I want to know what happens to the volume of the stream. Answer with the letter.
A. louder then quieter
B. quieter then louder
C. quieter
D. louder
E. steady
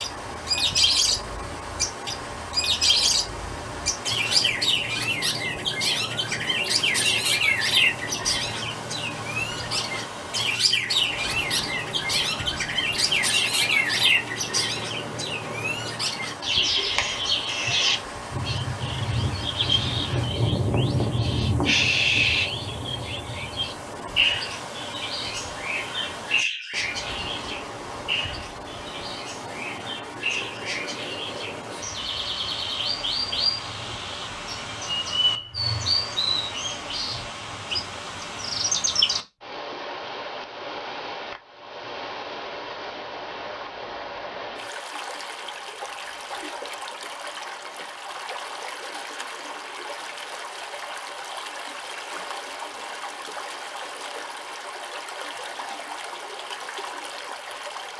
E.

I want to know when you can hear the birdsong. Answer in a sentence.
You can hear the birdsong from 0.0 to 39.2 s.